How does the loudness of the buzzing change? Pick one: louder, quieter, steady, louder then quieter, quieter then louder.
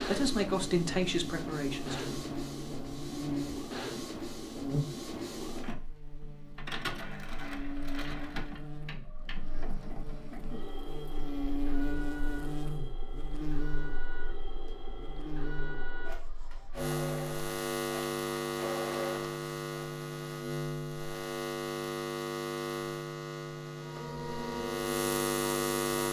quieter then louder.